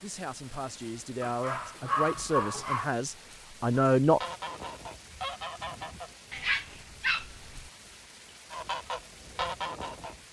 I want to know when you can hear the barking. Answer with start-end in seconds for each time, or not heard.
1.2-2.9, 6.3-7.7.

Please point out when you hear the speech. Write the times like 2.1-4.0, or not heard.
0.0-4.2.